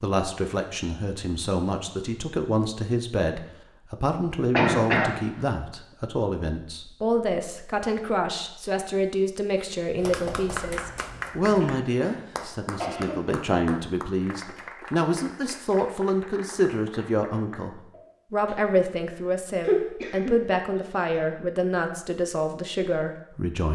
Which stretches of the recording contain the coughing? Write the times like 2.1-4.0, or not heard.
4.5-5.2, 11.6-13.3, 19.6-20.9.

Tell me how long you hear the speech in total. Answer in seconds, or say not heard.
24 s.